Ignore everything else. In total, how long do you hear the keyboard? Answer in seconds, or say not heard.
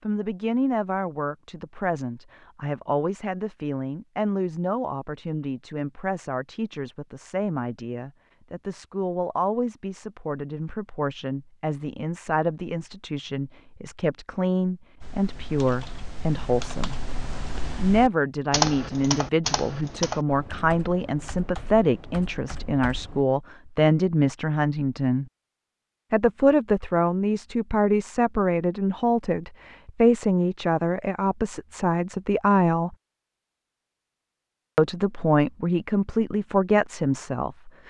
8 s.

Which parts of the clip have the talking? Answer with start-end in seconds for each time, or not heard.
0.0-17.0, 17.8-25.2, 26.1-33.0, 34.8-37.8.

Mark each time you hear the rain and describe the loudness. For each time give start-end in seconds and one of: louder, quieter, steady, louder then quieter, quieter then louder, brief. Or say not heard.
not heard.